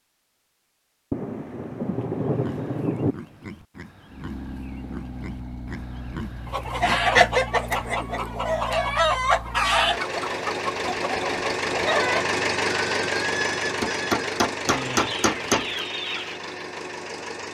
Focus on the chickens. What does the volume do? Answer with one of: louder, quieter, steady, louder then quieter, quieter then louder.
quieter.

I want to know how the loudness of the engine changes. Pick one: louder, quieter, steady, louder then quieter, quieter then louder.
louder then quieter.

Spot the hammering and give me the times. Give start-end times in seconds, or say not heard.
13.8-15.8.